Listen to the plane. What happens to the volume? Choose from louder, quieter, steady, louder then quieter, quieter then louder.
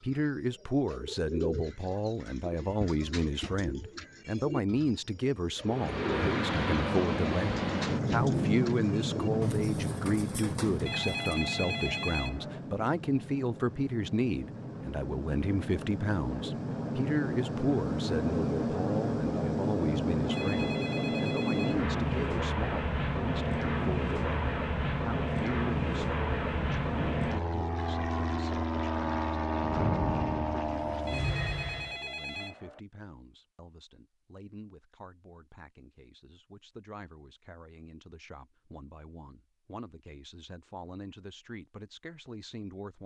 quieter then louder.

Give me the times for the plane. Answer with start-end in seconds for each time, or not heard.
5.6-31.9.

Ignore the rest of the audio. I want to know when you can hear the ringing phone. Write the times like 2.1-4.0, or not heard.
10.8-12.6, 20.3-21.9, 31.1-32.8.